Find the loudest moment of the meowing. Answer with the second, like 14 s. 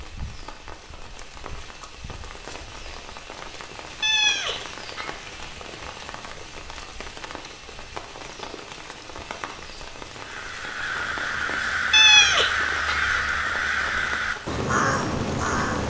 12 s.